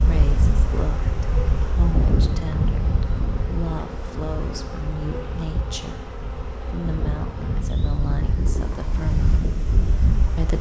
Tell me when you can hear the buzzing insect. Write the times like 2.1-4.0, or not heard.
0.0-8.2.